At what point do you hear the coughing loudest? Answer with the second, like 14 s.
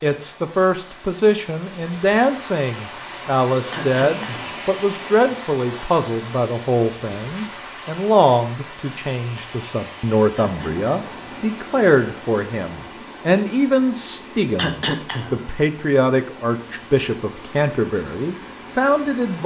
15 s.